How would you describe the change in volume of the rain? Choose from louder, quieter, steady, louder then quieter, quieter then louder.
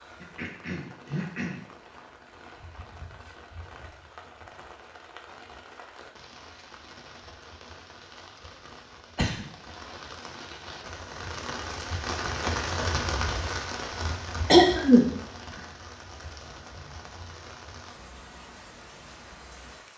louder then quieter.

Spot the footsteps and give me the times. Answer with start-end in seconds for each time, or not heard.
not heard.